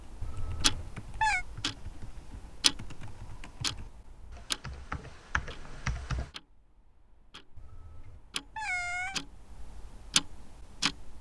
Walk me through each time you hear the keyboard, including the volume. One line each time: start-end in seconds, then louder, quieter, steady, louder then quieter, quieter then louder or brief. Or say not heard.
0.2-6.3 quieter then louder.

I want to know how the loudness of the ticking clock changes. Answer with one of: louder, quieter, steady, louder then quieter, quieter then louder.
quieter then louder.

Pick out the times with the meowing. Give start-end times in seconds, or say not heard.
0.2-1.4, 7.5-9.2.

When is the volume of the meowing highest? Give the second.
1 s.